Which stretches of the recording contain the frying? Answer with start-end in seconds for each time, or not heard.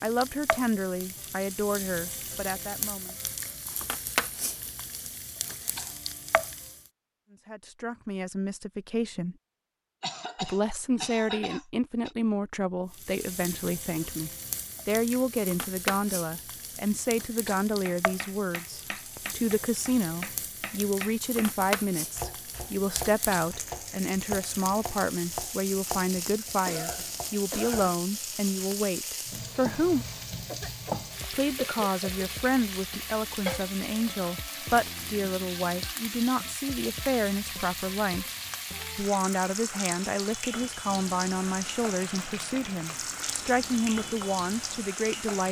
0.0-6.9, 12.9-45.4.